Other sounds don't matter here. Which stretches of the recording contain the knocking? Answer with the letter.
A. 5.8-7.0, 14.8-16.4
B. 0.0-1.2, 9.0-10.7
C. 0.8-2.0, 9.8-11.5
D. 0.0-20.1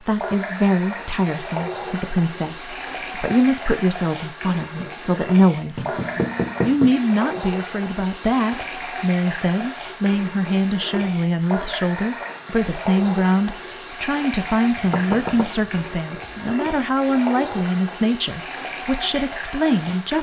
A.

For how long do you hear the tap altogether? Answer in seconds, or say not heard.
20 s.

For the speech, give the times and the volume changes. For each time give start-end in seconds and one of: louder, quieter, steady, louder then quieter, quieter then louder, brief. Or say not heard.
0.0-20.1 steady.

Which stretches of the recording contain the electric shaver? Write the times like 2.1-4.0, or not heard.
not heard.